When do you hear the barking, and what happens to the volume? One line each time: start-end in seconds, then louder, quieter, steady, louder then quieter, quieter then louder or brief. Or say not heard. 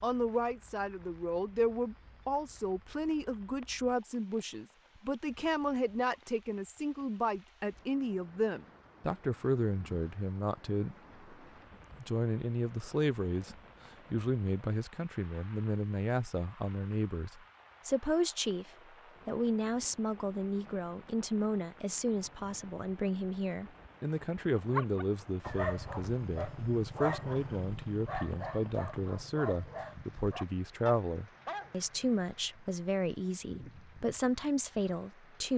24.6-31.7 quieter.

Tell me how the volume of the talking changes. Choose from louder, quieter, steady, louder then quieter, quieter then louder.
steady.